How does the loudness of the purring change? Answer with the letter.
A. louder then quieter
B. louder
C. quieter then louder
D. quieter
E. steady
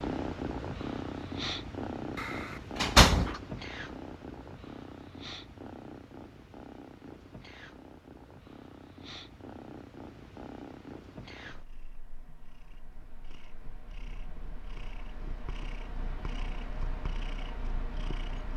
C.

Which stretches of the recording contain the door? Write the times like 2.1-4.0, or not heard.
2.1-3.4.